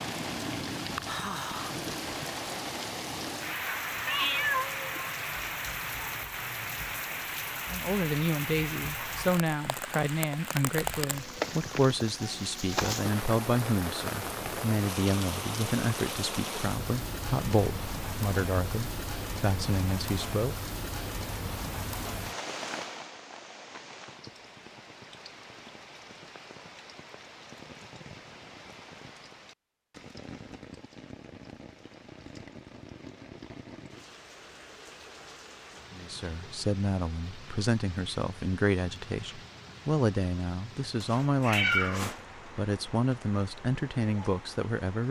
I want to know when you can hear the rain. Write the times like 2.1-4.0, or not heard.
0.0-45.0.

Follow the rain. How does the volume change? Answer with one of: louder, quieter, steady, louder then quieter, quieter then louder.
quieter.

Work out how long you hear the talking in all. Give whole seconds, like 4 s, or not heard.
22 s.